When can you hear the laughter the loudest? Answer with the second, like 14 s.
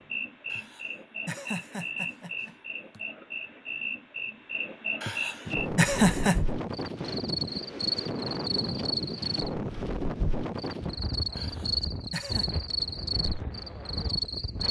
6 s.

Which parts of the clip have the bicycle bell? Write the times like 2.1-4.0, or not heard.
not heard.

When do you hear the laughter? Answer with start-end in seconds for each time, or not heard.
0.5-3.0, 5.0-6.4, 11.3-12.5.